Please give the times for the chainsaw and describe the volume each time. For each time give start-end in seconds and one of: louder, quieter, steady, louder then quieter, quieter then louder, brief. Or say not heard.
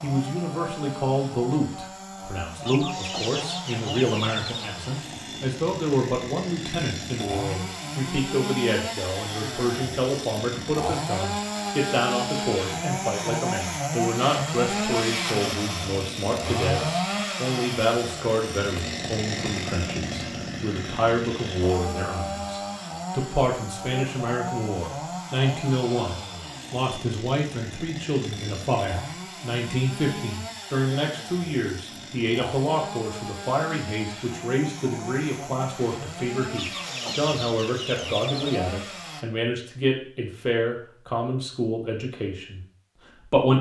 0.0-39.2 louder then quieter.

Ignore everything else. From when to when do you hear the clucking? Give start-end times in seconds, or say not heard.
2.6-4.5, 36.5-38.6.